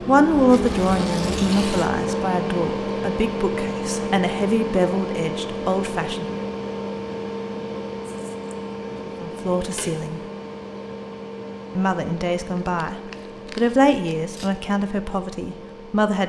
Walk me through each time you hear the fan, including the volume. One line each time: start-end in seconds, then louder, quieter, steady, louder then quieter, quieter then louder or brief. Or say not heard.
0.0-16.2 quieter.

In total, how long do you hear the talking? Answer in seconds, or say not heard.
12 s.